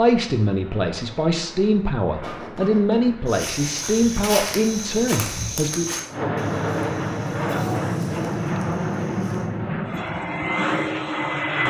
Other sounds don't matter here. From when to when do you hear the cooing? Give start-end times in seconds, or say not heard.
not heard.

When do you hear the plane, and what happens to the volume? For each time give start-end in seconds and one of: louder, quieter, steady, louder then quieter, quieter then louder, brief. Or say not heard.
0.0-11.6 louder.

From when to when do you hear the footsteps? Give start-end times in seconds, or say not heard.
3.2-9.5.